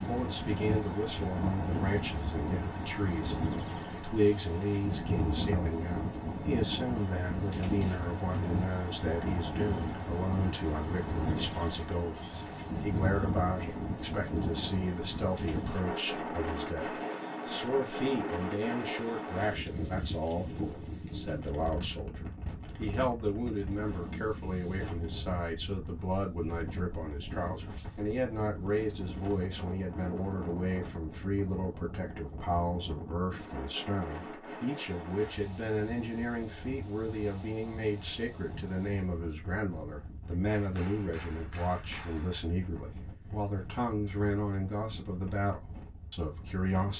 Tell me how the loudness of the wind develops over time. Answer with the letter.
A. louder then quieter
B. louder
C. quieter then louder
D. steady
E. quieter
E.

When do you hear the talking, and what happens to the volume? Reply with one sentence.
You can hear the talking from 0.1 to 46.9 s, at a steady volume.